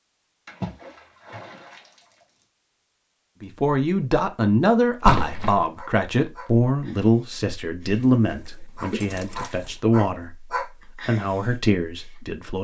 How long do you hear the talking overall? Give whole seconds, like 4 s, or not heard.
9 s.